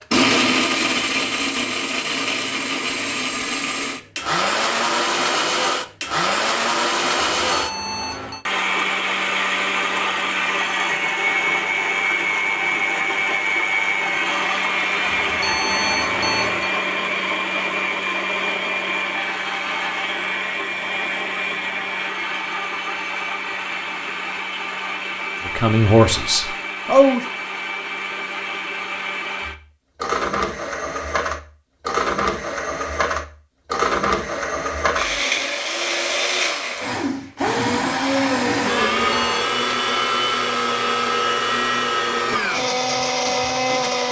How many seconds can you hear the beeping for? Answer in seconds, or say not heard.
3 s.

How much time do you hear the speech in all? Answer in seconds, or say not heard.
2 s.